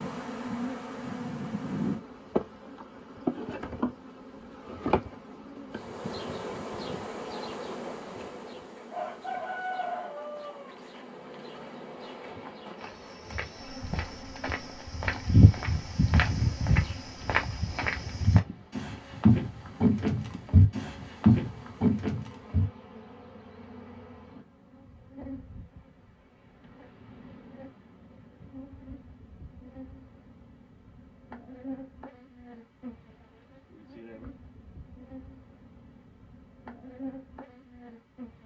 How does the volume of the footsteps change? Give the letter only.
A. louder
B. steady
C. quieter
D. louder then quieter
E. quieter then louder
A.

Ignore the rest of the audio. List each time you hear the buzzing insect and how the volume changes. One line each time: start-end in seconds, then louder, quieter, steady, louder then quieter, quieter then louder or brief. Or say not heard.
0.0-38.4 quieter.